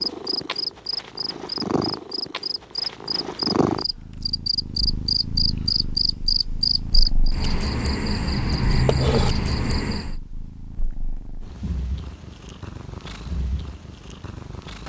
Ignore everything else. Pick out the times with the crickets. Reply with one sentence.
The crickets can be heard from 0.0 to 10.2 s.